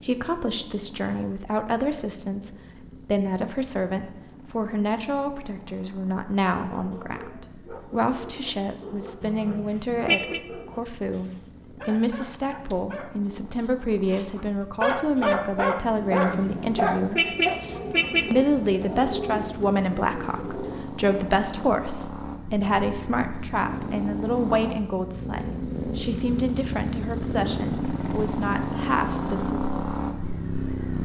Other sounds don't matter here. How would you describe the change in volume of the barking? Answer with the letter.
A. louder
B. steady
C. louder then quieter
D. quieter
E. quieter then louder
A.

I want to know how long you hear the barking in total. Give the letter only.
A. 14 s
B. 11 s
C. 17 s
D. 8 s
B.